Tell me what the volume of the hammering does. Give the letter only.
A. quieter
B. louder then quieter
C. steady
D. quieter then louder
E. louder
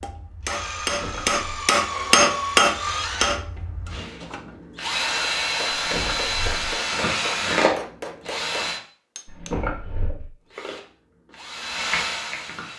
B.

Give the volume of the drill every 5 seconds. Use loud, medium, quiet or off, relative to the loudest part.
medium, loud, medium.